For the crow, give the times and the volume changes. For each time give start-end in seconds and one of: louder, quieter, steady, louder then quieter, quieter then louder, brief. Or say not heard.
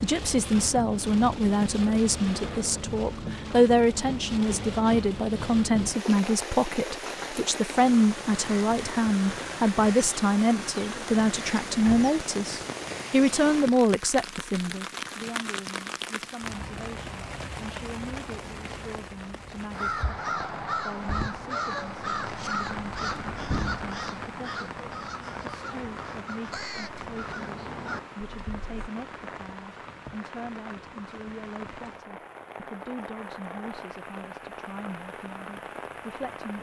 19.7-28.9 quieter.